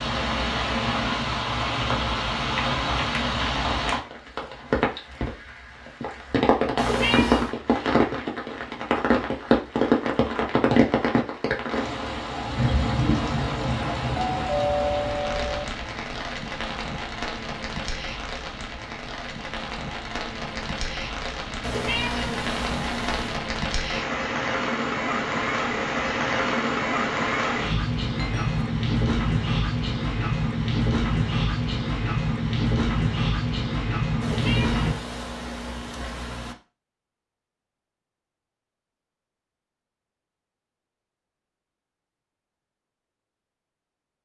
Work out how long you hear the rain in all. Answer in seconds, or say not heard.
35 s.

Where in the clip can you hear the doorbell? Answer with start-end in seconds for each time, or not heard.
14.1-15.7, 28.1-28.6.